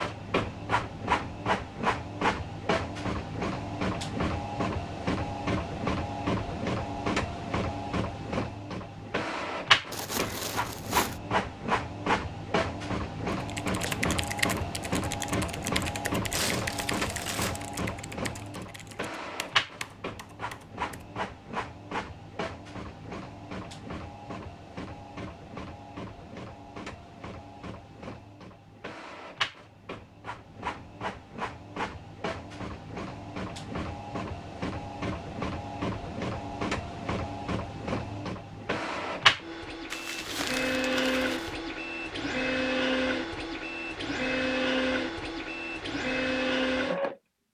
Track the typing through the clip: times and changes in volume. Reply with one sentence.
You can hear the typing from 13.3 to 21.1 s, getting quieter.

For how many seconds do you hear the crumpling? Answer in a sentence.
The crumpling can be heard for 4 seconds in total.